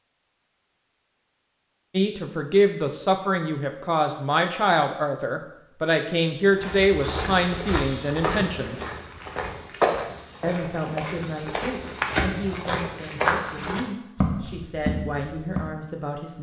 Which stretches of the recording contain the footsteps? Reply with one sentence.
The footsteps can be heard from 6.5 to 15.8 s.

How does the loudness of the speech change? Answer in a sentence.
The volume of the speech goes down.